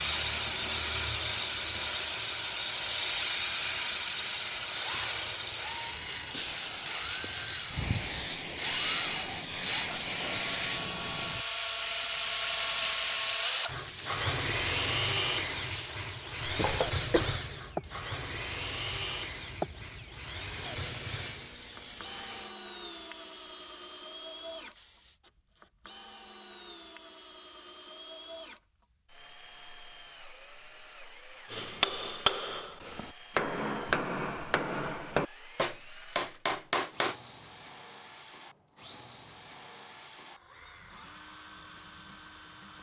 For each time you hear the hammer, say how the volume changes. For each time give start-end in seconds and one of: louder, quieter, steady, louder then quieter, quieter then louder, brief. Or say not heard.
31.5-37.1 steady.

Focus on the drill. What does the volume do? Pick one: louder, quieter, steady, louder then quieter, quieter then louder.
quieter.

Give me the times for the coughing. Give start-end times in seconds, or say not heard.
16.4-17.4.